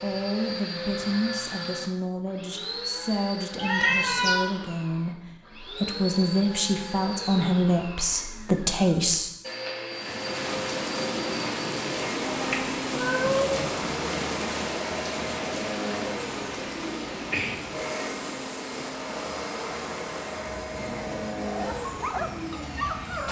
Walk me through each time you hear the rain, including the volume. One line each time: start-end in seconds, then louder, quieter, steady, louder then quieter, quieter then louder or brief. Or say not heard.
9.9-23.2 quieter.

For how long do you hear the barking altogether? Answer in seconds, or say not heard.
2 s.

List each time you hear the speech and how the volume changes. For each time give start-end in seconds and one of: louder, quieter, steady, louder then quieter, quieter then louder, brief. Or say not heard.
0.0-9.3 louder.